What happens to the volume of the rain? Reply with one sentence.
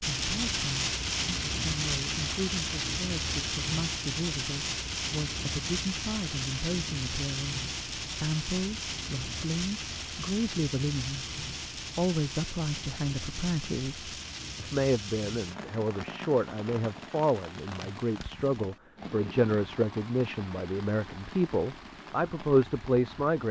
The loudness of the rain goes down.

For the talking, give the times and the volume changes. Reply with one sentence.
You can hear the talking from 0.0 to 23.4 s, getting louder.